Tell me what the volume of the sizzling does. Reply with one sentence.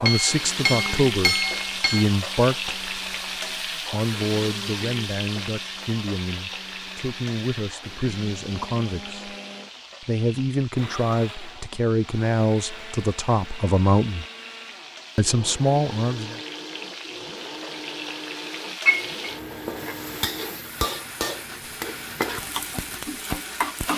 The volume of the sizzling goes down, then up.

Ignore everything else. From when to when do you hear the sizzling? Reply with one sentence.
The sizzling can be heard from 0.0 to 23.9 s.